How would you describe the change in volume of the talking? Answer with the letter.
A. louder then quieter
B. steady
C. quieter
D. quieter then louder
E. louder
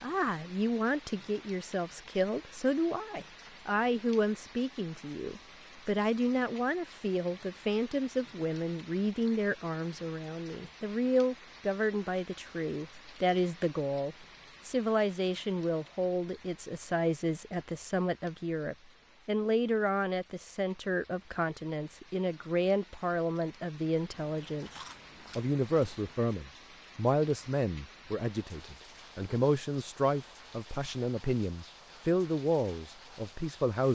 B.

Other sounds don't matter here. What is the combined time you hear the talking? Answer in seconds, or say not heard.
34 s.